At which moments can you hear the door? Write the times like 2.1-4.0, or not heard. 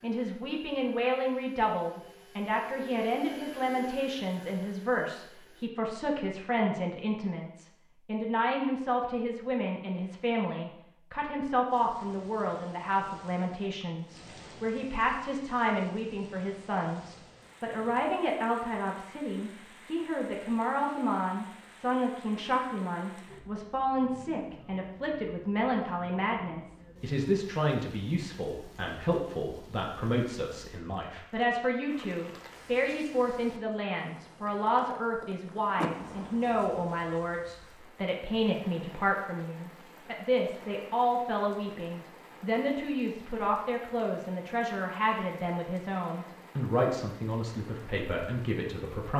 35.8-36.6.